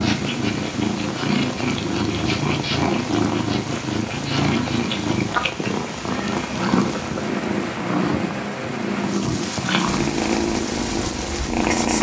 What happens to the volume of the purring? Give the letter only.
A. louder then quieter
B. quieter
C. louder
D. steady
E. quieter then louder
D.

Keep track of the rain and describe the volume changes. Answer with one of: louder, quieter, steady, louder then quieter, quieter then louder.
steady.